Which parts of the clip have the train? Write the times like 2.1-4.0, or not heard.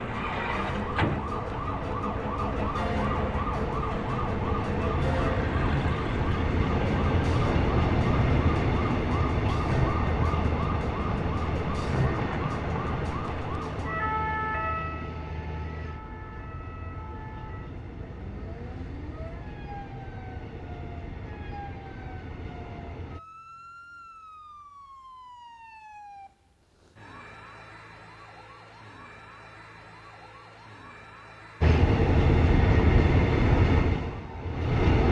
0.1-23.2, 31.6-35.0.